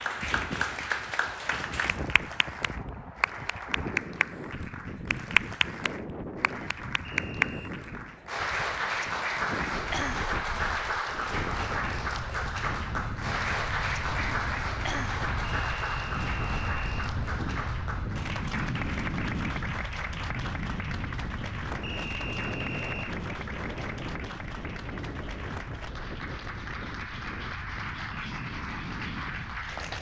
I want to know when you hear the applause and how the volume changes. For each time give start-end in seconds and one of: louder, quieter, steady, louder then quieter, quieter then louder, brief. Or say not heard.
0.0-29.9 quieter.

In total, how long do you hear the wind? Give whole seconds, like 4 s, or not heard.
30 s.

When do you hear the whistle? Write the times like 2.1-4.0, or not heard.
7.0-7.7, 15.4-16.9, 21.8-23.1.